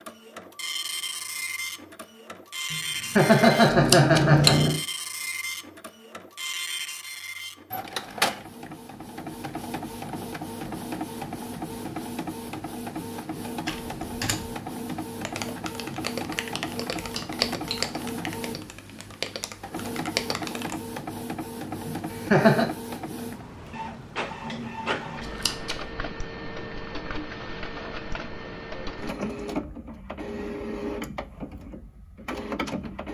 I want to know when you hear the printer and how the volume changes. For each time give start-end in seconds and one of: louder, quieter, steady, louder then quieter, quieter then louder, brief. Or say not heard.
0.0-33.0 steady.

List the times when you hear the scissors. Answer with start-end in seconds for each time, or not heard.
3.7-4.5, 16.9-17.8, 25.2-25.9.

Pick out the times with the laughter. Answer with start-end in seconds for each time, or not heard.
2.7-4.8, 21.9-22.7.